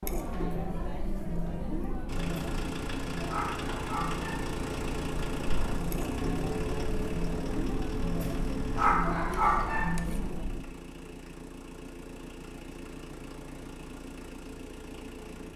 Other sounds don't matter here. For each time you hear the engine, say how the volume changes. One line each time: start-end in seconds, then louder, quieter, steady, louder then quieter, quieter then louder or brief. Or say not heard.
2.0-15.5 quieter.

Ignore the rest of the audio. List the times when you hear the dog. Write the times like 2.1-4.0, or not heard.
3.2-4.5, 8.8-9.9.